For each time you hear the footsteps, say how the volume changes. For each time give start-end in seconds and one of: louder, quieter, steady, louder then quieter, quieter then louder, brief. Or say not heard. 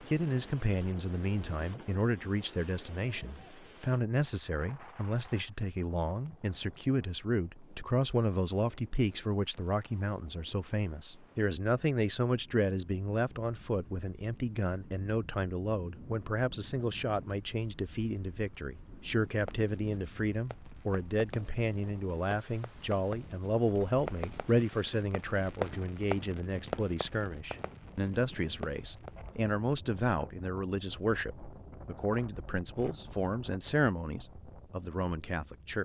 not heard.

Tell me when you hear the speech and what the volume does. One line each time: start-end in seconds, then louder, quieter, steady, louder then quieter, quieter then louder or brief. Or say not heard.
0.0-35.7 steady.